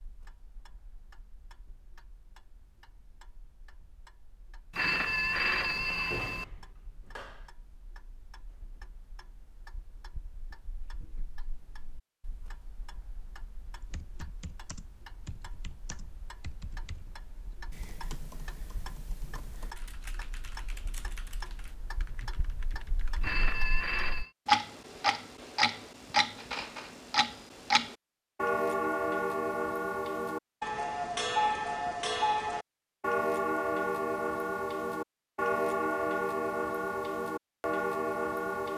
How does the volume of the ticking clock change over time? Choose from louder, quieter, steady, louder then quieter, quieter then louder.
louder.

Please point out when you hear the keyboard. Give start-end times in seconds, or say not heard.
13.9-23.4.